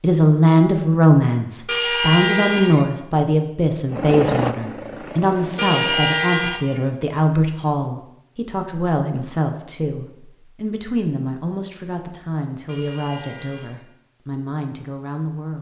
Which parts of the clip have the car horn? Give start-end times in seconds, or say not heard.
1.6-2.9, 5.5-6.7, 12.7-13.8.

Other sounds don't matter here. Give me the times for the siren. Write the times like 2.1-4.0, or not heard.
not heard.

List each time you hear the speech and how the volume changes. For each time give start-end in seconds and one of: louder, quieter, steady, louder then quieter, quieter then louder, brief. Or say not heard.
0.0-15.5 quieter.